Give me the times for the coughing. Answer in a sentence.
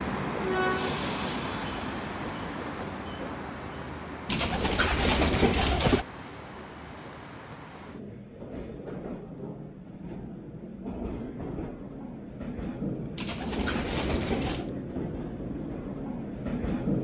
The coughing can't be heard in this clip.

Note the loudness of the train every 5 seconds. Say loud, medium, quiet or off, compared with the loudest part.
loud, medium, loud, loud.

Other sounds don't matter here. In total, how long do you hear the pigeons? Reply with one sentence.
The pigeons can be heard for 3 seconds in total.